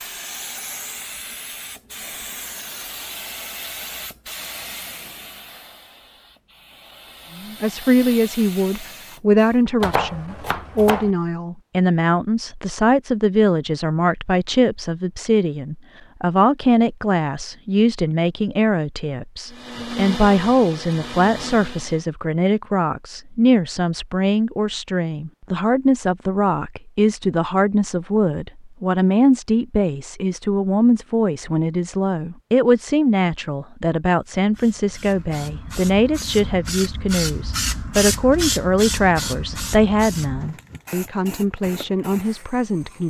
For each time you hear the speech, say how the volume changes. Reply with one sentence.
You can hear the speech from 7.3 to 43.0 s, at a steady volume.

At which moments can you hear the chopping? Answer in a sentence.
You can hear the chopping from 9.8 to 11.1 s.